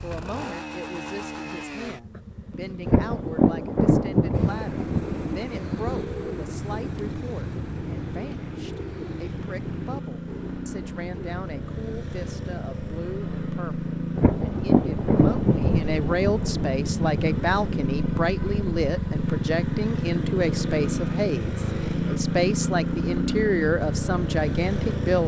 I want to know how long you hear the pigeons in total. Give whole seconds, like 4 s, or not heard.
7 s.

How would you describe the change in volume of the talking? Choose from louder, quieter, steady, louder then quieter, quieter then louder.
louder.